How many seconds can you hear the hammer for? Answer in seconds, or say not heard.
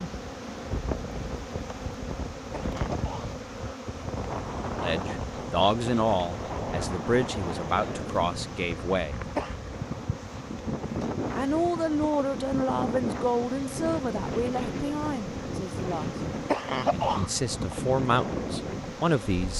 not heard.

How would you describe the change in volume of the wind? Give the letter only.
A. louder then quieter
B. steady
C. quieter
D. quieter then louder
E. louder
B.